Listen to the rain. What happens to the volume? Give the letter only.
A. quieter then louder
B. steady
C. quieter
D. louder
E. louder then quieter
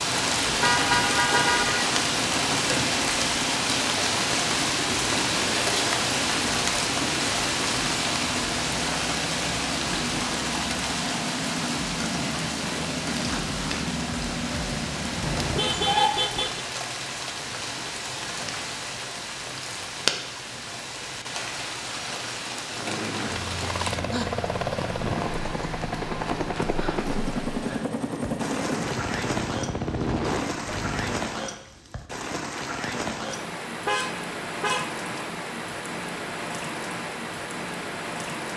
C.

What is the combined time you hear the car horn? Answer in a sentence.
The car horn can be heard for 4 seconds in total.